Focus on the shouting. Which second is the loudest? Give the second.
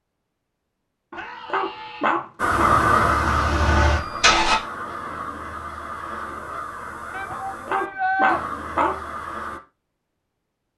8 s.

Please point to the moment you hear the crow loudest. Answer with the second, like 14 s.
3 s.